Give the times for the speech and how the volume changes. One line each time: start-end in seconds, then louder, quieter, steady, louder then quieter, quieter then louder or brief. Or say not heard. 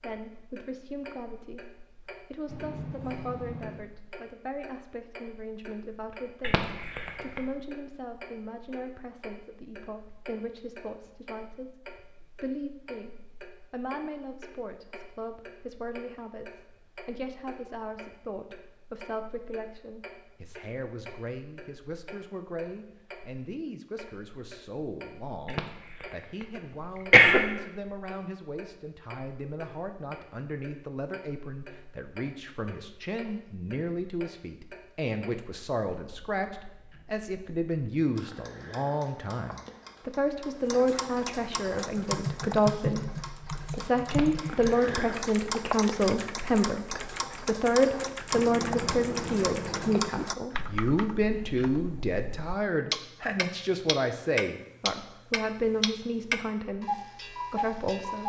0.0-58.2 louder.